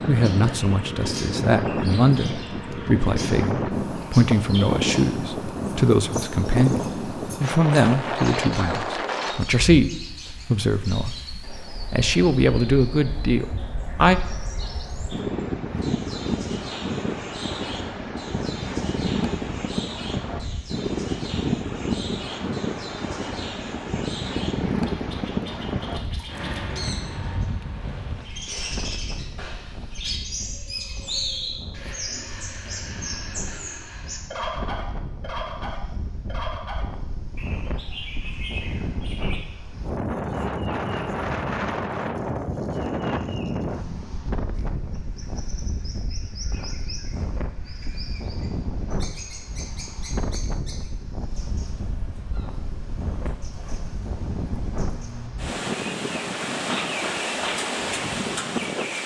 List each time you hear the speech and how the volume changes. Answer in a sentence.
You can hear the speech from 0.1 to 14.2 s, at a steady volume.